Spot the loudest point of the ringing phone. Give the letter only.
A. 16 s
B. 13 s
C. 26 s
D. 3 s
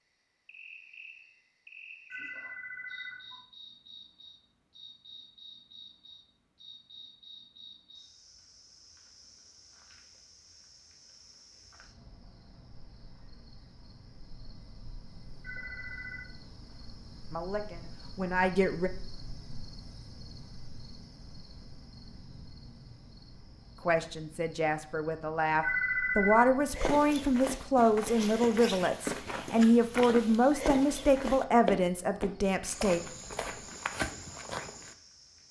C.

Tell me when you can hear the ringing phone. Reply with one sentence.
The ringing phone can be heard from 2.1 to 3.5 s, from 15.4 to 16.3 s and from 25.6 to 26.4 s.